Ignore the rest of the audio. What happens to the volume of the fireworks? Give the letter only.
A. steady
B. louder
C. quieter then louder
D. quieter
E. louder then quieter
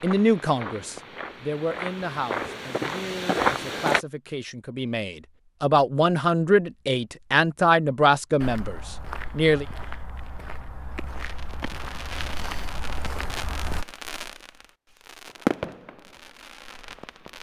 E.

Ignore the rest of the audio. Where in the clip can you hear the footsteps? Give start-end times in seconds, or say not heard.
0.0-4.0, 8.4-13.8.